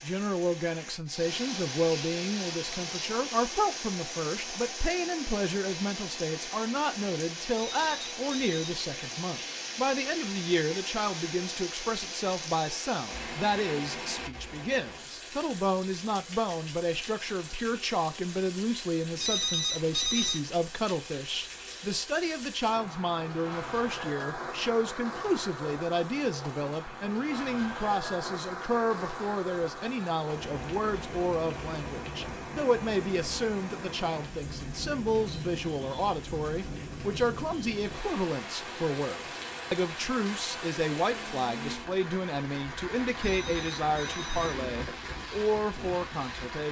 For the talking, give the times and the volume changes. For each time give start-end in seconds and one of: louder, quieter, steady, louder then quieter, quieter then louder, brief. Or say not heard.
0.0-46.6 steady.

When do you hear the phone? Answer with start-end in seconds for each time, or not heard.
7.5-8.6, 19.2-20.4, 43.2-44.6.